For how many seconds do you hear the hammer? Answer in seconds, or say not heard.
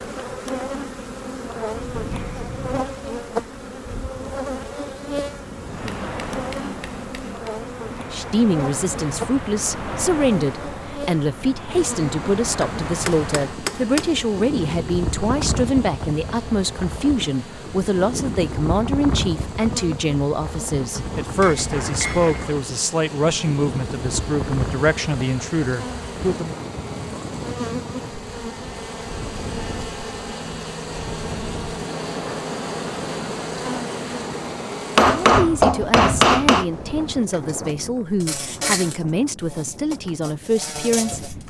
6 s.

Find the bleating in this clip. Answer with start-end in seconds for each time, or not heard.
not heard.